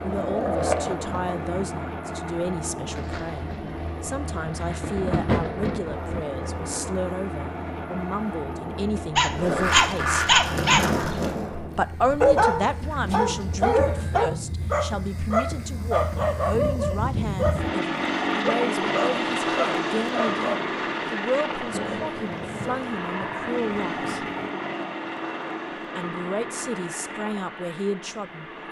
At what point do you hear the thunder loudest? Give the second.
5 s.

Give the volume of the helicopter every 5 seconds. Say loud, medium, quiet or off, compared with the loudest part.
medium, medium, medium, loud, loud, medium.